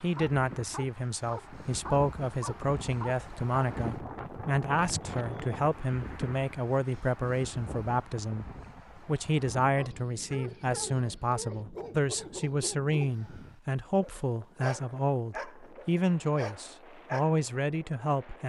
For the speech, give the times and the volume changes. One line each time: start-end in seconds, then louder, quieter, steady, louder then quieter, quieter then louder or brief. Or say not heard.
0.0-18.4 steady.